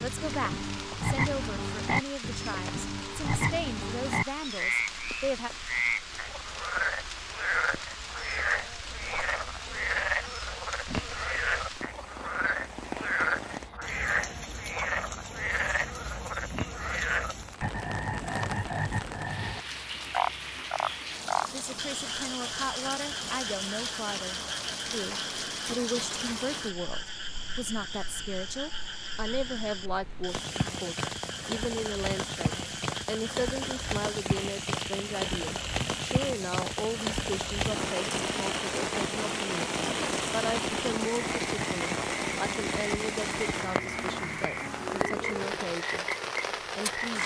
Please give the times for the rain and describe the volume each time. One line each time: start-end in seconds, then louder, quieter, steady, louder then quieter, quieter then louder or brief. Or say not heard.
0.0-47.2 louder.